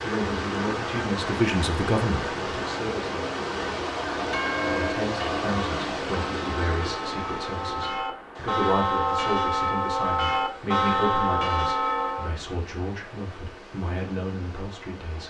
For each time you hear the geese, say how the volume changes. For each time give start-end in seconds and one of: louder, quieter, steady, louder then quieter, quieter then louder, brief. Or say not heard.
not heard.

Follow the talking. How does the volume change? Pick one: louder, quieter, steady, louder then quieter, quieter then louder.
quieter.